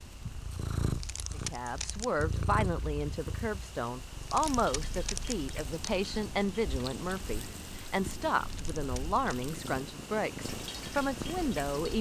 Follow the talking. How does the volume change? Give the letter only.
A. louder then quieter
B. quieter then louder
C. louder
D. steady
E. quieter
D.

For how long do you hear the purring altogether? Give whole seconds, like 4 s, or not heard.
12 s.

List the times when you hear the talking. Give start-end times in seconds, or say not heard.
1.3-11.9.